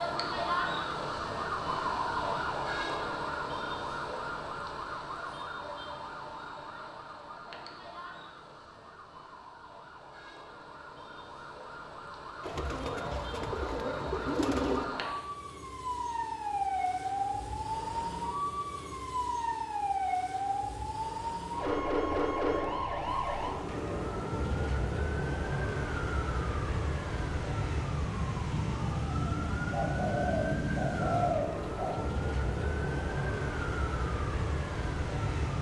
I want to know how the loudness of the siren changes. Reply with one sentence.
The volume of the siren goes down, then up.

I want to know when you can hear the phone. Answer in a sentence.
The phone can't be heard in this clip.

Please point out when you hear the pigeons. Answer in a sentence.
The pigeons can be heard from 12.4 to 14.9 s and from 29.7 to 31.9 s.